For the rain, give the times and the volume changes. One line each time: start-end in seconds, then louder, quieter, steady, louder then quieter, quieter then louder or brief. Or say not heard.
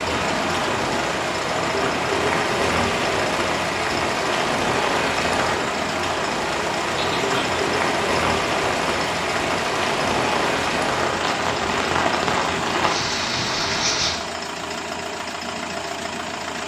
0.0-14.2 steady.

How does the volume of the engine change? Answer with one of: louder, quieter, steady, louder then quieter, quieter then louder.
steady.